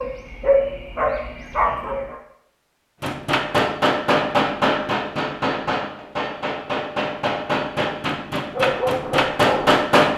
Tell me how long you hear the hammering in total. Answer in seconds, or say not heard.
7 s.